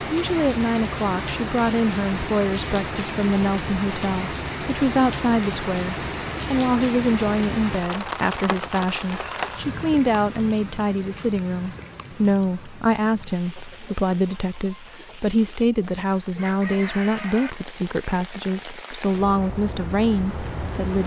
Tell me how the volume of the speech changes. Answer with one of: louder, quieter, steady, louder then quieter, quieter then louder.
steady.